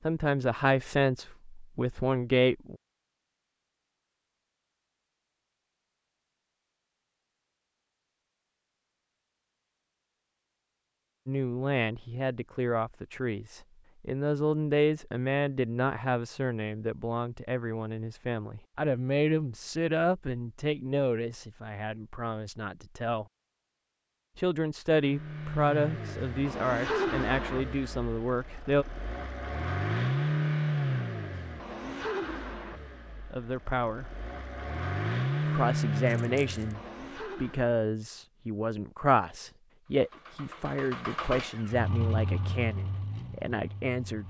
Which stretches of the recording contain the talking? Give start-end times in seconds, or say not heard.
0.0-2.8, 11.2-23.2, 24.4-28.9, 33.2-34.0, 35.5-44.2.